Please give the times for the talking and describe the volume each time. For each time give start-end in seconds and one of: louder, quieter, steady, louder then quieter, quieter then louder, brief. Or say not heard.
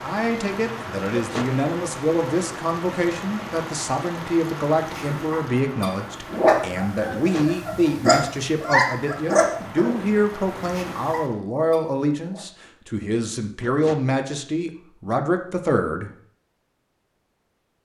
0.0-16.1 steady.